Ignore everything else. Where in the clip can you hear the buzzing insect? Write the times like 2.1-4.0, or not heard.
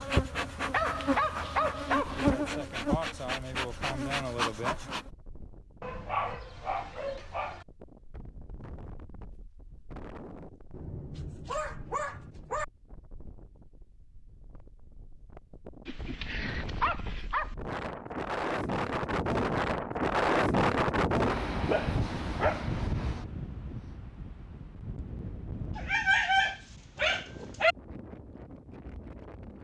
0.0-5.0.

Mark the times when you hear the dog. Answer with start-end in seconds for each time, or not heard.
0.7-2.4, 5.8-7.7, 10.7-12.7, 15.8-17.6, 21.6-22.8, 25.8-27.8.